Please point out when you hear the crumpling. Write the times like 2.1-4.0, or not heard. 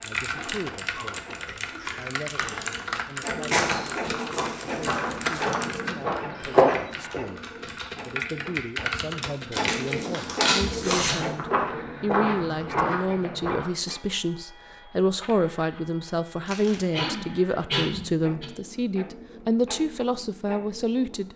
3.5-5.5, 9.5-11.2, 16.4-16.9.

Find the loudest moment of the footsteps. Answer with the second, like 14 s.
7 s.